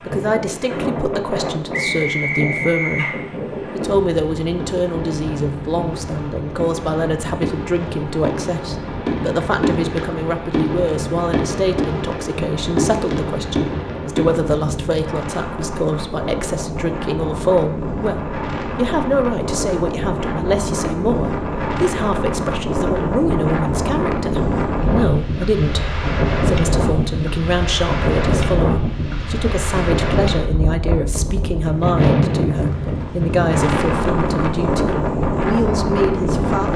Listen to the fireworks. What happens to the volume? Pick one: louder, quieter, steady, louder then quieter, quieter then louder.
louder.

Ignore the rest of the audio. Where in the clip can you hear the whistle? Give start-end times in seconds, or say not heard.
1.7-3.2.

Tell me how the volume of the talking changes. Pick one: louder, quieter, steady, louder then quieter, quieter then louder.
steady.